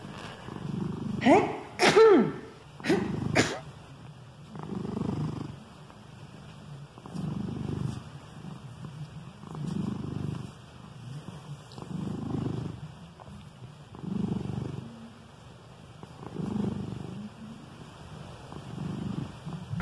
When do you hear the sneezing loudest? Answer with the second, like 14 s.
2 s.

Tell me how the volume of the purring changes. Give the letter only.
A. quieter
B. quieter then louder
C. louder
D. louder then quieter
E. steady
E.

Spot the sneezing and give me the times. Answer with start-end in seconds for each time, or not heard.
1.2-3.6.